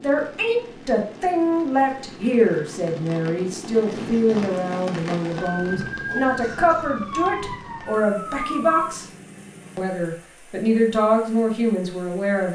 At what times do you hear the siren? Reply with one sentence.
The siren can be heard from 5.4 to 8.9 s.